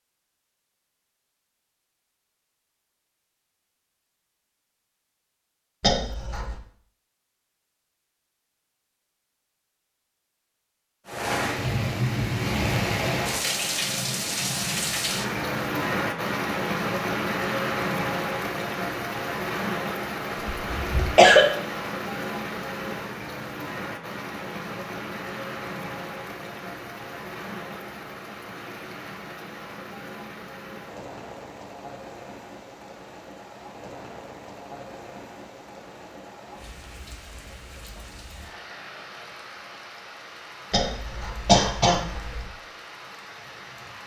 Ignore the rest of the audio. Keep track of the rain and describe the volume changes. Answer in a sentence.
The volume of the rain goes down.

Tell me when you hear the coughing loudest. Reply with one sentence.
The volume of the coughing peaks at 21 seconds.